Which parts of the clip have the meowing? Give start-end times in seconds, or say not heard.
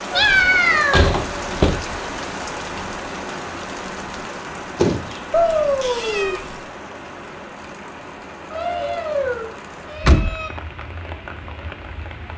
0.1-1.1, 5.3-6.7, 8.5-10.5.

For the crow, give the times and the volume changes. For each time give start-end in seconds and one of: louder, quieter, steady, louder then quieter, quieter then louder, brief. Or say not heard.
not heard.